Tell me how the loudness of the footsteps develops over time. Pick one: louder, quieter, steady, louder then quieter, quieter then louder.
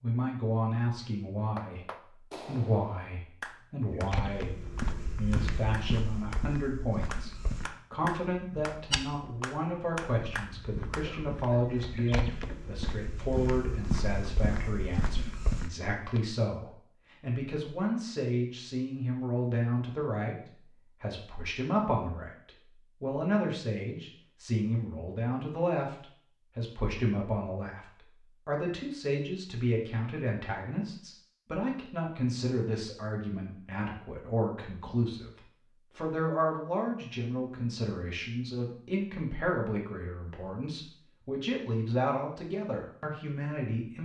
quieter then louder.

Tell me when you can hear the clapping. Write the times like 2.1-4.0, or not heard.
1.4-11.1.